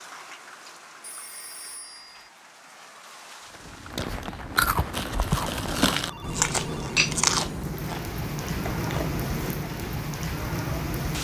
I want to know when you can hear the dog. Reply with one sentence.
You can't hear the dog here.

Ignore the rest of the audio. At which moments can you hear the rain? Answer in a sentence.
You can hear the rain from 0.0 to 11.1 s.